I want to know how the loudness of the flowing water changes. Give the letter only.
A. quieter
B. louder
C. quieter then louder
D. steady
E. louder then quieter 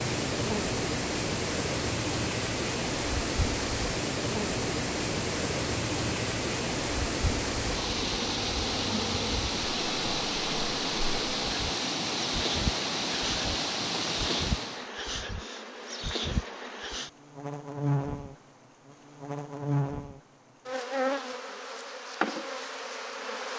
D.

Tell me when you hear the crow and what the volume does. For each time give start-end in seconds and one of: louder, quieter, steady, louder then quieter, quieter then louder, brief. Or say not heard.
not heard.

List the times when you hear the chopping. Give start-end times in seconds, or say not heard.
not heard.